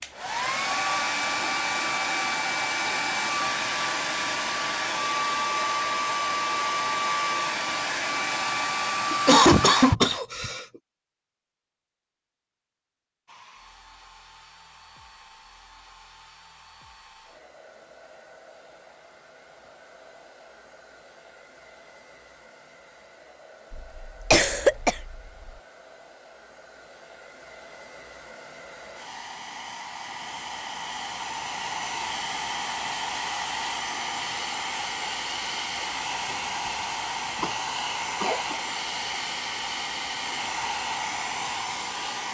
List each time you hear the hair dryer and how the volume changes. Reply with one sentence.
The hair dryer can be heard from 0.0 to 9.9 s, at a steady volume; and from 13.2 to 42.2 s, getting louder.